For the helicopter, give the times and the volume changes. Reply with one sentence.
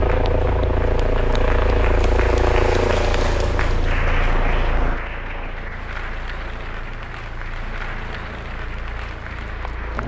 You can hear the helicopter from 0.0 to 10.0 s, getting quieter.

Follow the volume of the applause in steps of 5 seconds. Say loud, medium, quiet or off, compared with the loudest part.
loud, medium.